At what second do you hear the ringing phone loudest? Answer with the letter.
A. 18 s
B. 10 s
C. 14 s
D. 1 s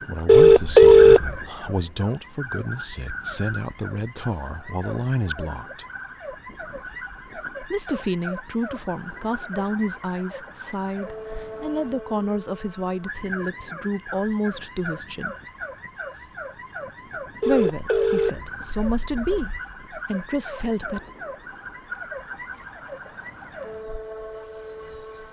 D.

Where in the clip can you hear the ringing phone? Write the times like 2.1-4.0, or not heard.
0.2-1.4, 17.4-19.6.